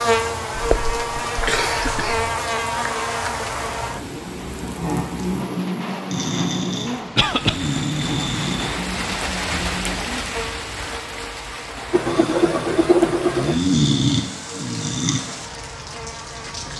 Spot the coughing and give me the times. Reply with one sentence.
The coughing can be heard from 0.6 to 2.3 s, from 7.2 to 7.6 s and from 11.9 to 13.6 s.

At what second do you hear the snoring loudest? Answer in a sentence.
The loudest moment of the snoring is at 14 seconds.